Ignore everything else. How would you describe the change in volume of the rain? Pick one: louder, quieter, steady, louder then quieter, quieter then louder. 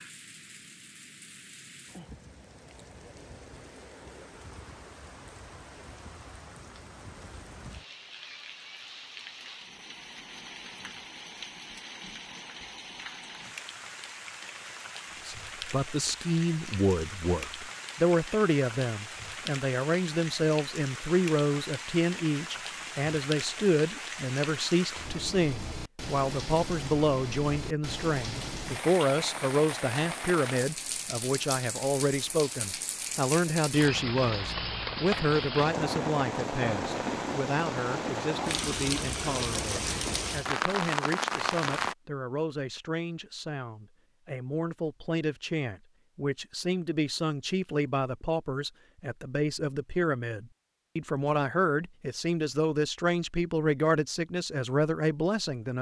louder.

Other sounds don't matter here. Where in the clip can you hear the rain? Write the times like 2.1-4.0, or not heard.
0.0-42.0.